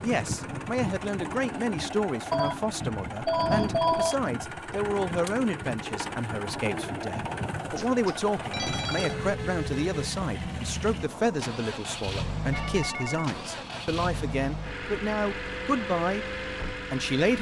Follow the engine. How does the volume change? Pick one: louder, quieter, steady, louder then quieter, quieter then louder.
steady.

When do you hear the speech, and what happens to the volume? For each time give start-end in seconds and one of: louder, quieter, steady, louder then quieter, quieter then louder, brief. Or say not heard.
0.0-17.3 steady.